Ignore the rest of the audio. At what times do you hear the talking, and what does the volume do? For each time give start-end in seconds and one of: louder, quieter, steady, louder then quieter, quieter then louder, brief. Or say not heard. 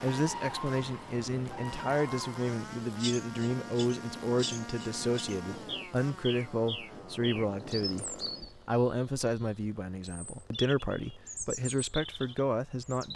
0.0-13.1 steady.